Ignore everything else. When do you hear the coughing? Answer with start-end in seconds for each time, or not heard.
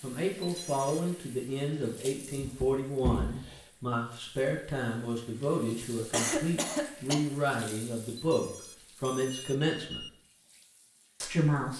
2.4-3.6, 6.1-7.2.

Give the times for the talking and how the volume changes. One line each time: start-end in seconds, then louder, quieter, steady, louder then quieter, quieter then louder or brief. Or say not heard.
0.0-10.1 steady
11.2-11.7 brief.